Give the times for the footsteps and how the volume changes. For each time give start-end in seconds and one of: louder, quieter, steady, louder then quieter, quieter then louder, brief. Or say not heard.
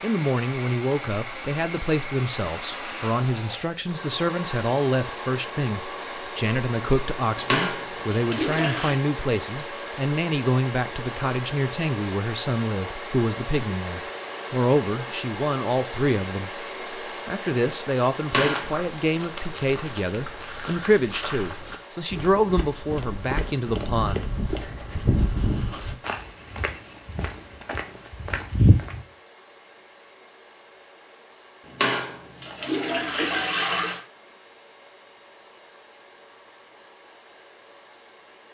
18.4-29.1 louder.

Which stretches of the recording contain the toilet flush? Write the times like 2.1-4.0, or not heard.
7.3-8.9, 18.2-18.7, 31.6-34.0.